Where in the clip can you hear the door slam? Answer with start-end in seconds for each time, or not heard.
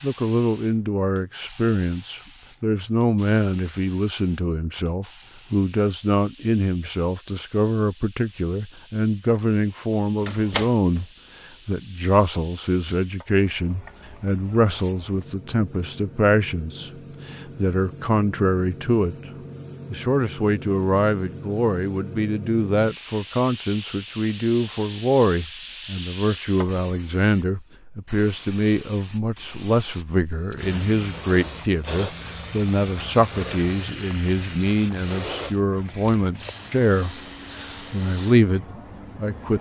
10.2-11.1.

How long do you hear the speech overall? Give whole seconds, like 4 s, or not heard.
38 s.